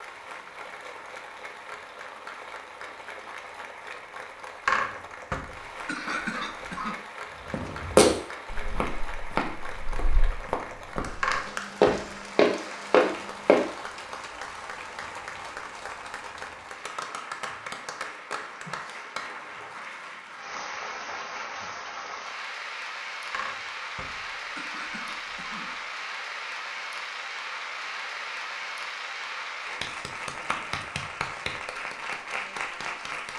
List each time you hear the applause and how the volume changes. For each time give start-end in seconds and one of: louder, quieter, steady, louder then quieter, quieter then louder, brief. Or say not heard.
0.0-33.3 louder.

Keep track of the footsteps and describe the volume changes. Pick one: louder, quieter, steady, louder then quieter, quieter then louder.
quieter then louder.